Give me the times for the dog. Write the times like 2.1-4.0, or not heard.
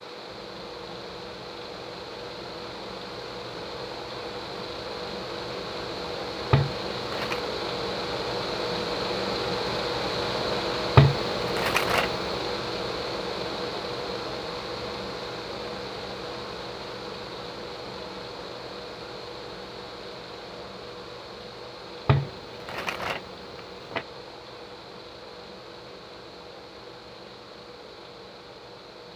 not heard.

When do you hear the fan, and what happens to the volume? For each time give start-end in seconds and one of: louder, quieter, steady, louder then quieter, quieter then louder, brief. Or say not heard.
0.0-29.1 louder then quieter.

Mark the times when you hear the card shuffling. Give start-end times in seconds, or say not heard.
6.5-7.5, 10.9-12.1, 22.1-24.1.